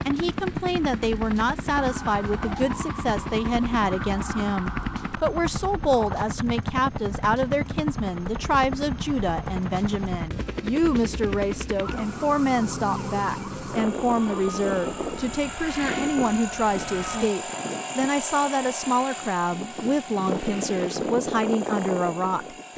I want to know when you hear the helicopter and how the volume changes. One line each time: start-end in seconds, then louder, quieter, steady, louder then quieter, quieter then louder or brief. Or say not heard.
0.0-22.7 steady.